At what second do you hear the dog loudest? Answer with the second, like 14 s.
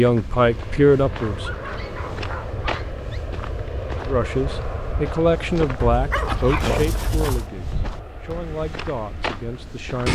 7 s.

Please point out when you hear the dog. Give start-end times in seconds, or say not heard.
1.1-3.2, 5.8-7.5.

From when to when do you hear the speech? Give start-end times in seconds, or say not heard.
0.0-1.5, 4.0-10.0.